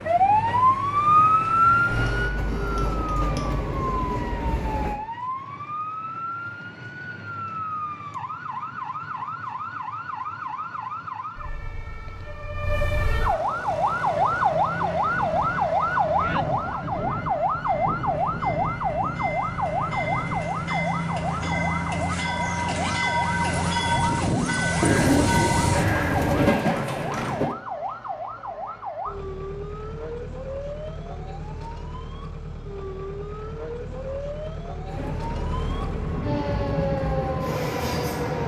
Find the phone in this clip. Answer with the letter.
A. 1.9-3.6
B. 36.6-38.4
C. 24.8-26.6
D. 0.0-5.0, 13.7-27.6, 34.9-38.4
A.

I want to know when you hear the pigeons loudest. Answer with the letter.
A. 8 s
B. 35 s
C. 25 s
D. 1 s
C.